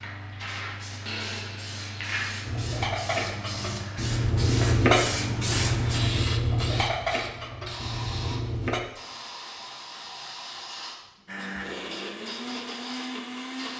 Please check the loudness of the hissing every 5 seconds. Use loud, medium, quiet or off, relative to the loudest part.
loud, loud, medium.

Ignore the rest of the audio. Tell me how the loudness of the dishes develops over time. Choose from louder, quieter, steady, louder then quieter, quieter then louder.
louder then quieter.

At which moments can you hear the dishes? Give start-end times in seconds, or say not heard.
2.4-8.8.